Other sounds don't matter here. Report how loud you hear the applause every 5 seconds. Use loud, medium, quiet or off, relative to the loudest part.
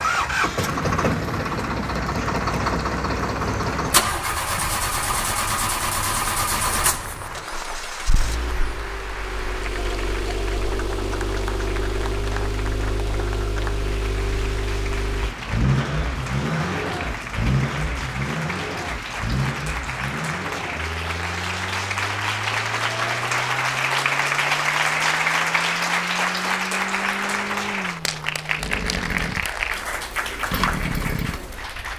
medium, medium, medium, medium, loud, loud, medium.